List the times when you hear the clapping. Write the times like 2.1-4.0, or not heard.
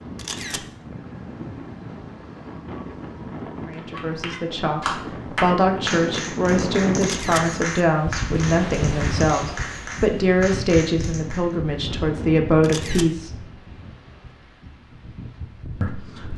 3.7-11.4.